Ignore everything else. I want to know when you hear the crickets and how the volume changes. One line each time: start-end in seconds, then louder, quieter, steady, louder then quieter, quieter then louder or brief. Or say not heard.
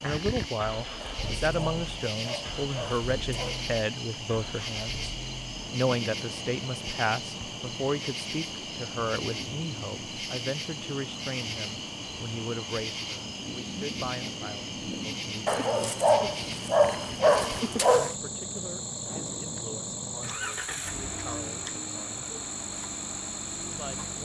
0.0-24.2 steady.